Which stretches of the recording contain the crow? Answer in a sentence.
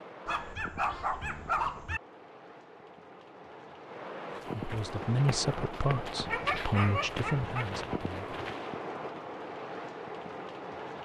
You can't hear the crow here.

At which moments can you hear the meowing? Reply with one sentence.
The meowing can't be heard in this clip.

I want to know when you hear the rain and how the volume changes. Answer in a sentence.
The rain can be heard from 0.0 to 10.9 s, getting louder.